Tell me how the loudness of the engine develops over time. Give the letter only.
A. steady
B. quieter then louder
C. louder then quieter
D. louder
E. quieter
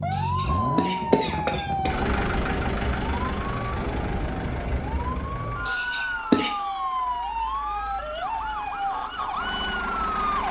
B.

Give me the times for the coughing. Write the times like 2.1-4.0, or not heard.
0.1-1.9, 5.7-6.5.